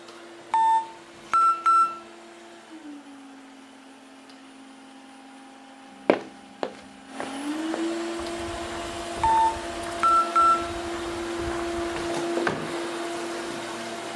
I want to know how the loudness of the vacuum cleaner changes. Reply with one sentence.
The loudness of the vacuum cleaner goes up.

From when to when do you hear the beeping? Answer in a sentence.
The beeping can be heard from 0.5 to 2.0 s and from 9.2 to 10.7 s.